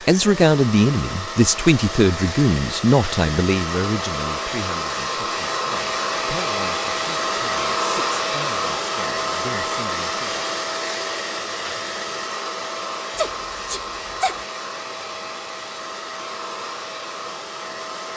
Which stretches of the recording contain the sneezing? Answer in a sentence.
You can hear the sneezing from 13.2 to 14.4 s.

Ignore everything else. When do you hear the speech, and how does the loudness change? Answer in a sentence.
The speech can be heard from 0.1 to 10.4 s, getting quieter.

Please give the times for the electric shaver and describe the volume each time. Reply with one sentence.
The electric shaver can't be heard in this clip.